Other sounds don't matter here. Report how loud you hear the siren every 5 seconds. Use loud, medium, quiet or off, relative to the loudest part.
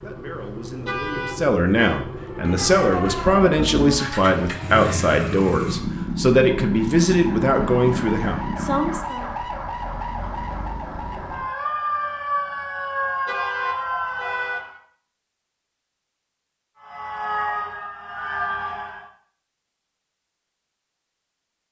medium, medium, loud, loud, off.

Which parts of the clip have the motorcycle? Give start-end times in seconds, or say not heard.
0.0-9.0.